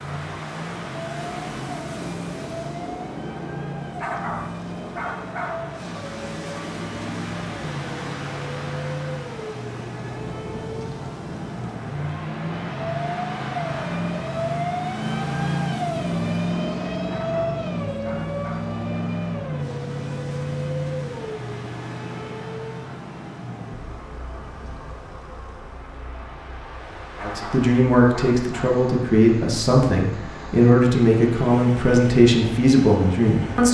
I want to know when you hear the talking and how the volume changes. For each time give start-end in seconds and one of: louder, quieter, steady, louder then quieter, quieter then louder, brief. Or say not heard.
27.2-33.6 steady.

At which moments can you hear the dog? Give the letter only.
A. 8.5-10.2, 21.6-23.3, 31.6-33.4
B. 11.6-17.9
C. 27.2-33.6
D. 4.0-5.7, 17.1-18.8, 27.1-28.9
D.